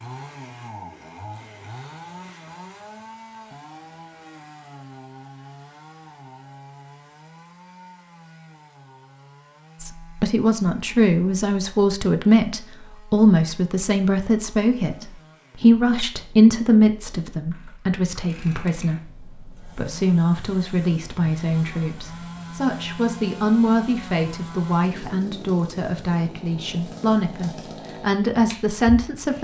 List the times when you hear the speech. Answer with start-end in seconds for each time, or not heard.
9.8-29.3.